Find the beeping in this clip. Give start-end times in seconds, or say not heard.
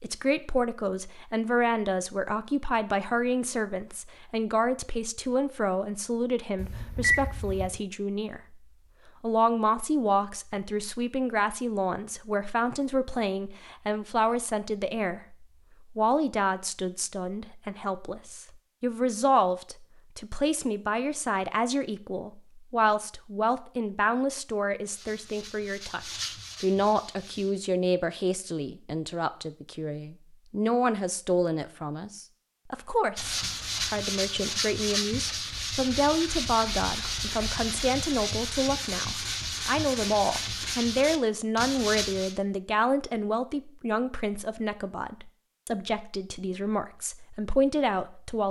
6.5-7.8.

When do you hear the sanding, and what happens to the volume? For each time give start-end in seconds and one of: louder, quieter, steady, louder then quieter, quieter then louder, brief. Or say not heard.
24.9-27.6 brief
33.1-42.4 steady.